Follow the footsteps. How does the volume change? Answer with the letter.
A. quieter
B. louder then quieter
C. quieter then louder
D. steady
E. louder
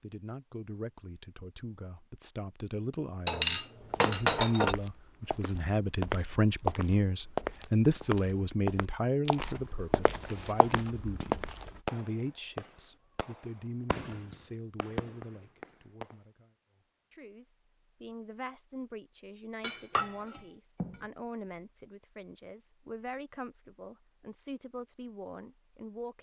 E.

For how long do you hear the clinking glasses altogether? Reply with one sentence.
The clinking glasses can be heard for 3 seconds in total.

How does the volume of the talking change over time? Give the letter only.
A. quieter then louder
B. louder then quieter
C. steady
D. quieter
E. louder
B.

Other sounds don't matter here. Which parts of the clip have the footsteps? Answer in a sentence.
The footsteps can be heard from 3.8 to 11.8 s.